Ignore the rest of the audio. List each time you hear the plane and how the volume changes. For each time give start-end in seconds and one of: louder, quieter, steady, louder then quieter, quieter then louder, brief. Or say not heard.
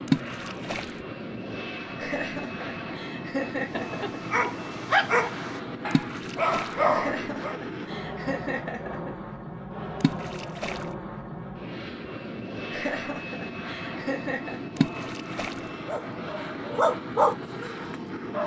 0.0-18.4 steady.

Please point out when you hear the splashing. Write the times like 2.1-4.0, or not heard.
0.1-0.9, 5.9-6.8, 10.0-10.8, 14.8-15.6.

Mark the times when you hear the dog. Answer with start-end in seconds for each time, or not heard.
3.7-7.5, 15.8-18.4.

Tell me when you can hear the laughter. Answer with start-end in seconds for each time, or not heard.
1.9-4.2, 6.8-9.2, 12.7-14.6.